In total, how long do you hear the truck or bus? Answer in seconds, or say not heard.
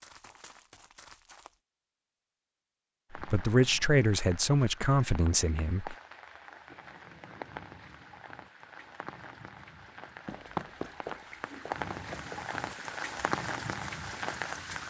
not heard.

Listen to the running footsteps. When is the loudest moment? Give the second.
11 s.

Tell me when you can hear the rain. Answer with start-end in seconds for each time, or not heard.
3.1-14.8.